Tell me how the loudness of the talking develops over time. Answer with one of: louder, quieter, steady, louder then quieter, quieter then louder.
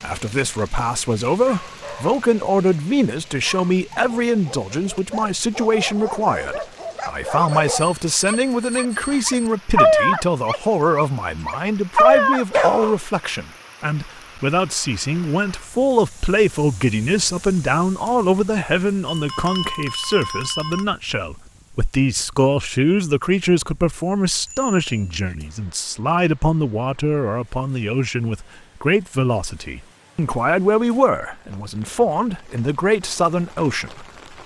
steady.